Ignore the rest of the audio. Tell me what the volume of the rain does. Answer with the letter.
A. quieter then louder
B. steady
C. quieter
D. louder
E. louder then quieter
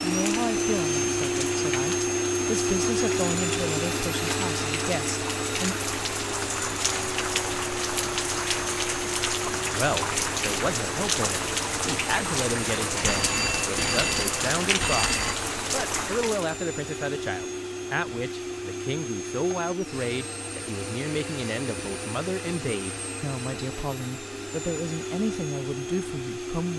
D.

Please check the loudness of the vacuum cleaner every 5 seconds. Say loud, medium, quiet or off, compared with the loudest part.
loud, medium, medium, medium, medium, medium.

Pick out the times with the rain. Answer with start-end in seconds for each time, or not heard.
0.0-16.6.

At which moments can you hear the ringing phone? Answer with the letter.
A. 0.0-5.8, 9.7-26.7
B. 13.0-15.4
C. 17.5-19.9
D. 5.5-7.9
B.